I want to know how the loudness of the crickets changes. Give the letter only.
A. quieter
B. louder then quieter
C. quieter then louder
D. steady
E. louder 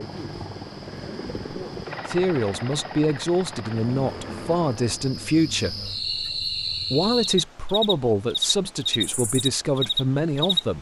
E.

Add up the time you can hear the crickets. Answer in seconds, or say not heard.
11 s.